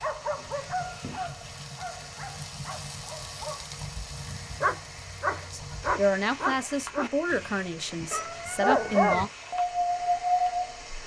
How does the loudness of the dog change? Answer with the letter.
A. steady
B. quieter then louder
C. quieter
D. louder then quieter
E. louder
B.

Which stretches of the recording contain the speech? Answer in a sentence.
The speech can be heard from 5.5 to 9.3 s.